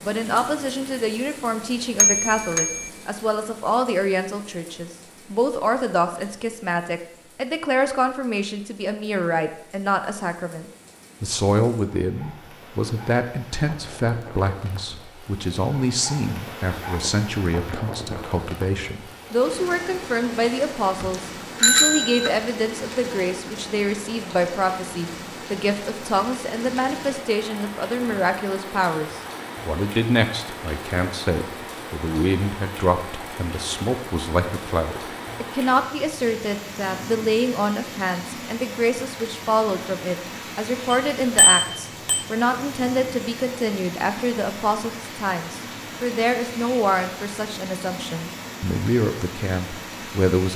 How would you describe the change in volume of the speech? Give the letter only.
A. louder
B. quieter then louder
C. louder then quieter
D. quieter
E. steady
E.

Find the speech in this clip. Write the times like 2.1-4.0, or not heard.
0.0-50.5.